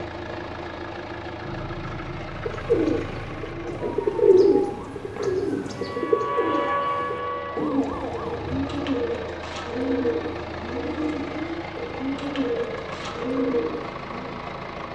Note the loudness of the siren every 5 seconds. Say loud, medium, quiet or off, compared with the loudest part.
medium, loud, off.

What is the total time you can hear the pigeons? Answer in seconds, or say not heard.
12 s.